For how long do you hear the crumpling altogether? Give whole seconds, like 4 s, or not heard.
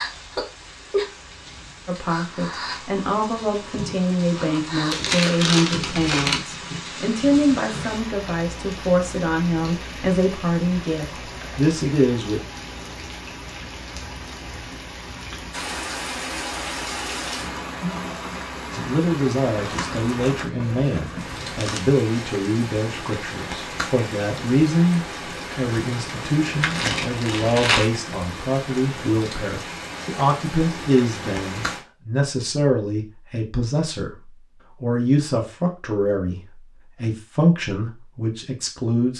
5 s.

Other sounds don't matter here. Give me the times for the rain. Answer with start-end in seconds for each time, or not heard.
0.0-31.9.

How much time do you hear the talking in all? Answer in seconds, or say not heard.
31 s.